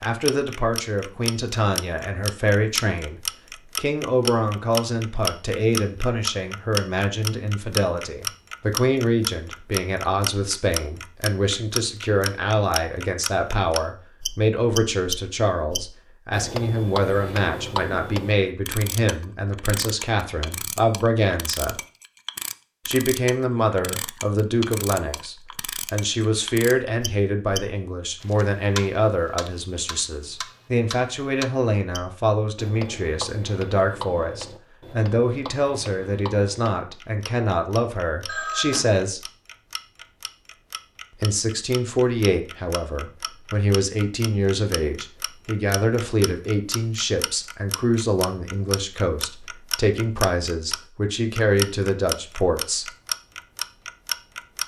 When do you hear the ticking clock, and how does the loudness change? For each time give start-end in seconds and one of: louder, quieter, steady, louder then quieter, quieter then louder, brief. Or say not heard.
0.0-54.6 quieter then louder.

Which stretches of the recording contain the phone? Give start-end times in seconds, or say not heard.
38.2-38.9.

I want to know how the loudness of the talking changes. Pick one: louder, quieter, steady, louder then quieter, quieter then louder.
steady.